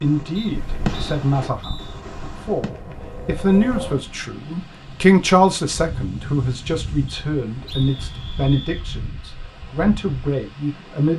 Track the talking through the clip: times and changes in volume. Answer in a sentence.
You can hear the talking from 0.0 to 11.1 s, getting louder then quieter.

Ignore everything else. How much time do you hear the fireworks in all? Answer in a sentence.
You can hear the fireworks for 3 seconds altogether.